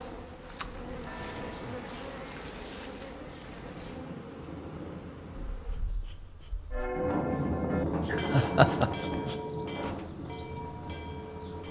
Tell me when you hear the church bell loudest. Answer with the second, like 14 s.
7 s.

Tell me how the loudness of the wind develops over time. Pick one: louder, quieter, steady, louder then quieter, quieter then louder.
louder then quieter.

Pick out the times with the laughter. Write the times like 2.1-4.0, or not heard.
7.8-9.3.